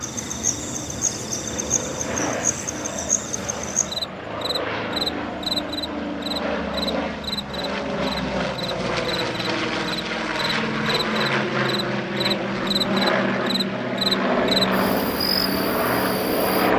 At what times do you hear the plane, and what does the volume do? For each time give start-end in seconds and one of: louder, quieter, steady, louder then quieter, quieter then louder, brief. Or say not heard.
0.0-16.7 louder.